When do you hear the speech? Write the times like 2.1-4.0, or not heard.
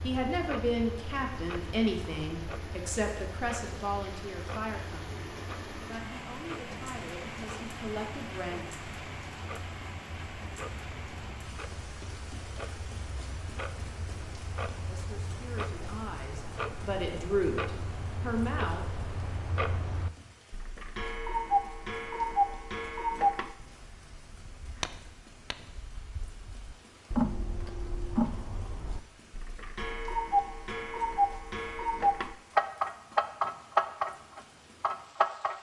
0.0-8.7, 14.8-17.6, 18.2-18.9.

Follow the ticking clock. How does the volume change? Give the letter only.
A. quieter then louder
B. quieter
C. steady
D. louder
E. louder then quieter
D.